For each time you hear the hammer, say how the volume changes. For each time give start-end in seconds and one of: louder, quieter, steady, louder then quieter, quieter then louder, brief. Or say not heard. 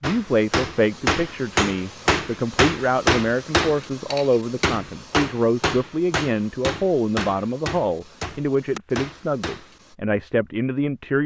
0.0-9.9 quieter.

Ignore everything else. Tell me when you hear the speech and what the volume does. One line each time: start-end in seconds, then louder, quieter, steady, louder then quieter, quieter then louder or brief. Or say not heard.
0.0-11.2 steady.